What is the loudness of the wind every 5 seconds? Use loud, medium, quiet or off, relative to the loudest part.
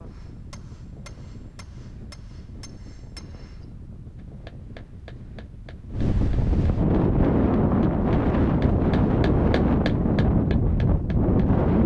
quiet, loud, loud.